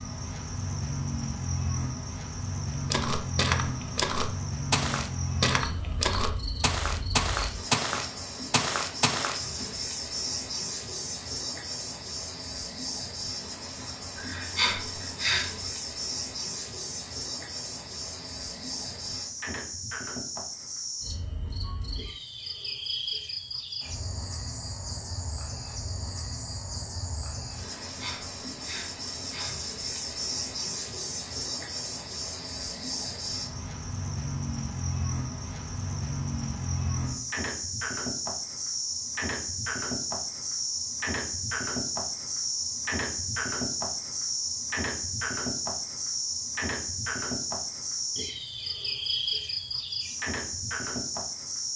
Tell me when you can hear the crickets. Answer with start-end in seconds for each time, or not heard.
0.0-51.7.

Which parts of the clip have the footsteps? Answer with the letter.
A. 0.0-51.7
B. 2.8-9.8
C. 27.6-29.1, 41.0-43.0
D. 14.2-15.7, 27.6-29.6
B.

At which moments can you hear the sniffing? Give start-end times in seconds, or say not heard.
14.2-15.7, 27.6-29.6.